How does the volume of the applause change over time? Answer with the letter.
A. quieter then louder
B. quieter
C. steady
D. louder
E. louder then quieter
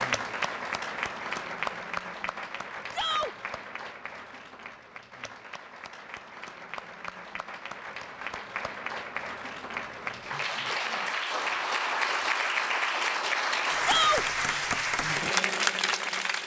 A.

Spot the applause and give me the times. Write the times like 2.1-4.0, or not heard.
0.0-16.4.